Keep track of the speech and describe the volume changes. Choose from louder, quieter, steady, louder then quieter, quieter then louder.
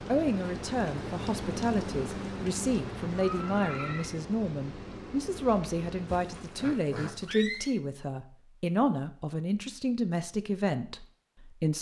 steady.